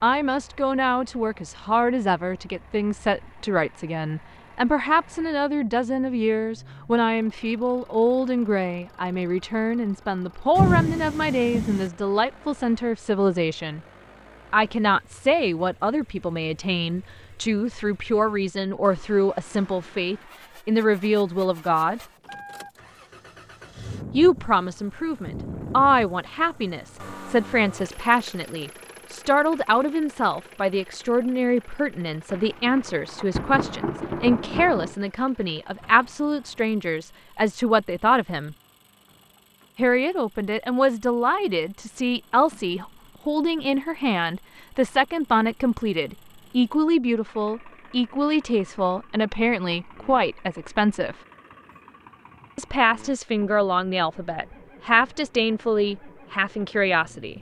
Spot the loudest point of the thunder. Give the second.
11 s.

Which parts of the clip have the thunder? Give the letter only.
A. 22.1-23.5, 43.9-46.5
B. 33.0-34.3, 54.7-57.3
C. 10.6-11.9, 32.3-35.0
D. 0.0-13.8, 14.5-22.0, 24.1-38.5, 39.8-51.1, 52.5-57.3
C.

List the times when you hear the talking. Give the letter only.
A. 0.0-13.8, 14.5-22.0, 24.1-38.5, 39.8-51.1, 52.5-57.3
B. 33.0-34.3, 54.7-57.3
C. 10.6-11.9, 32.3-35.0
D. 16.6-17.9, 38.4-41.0
A.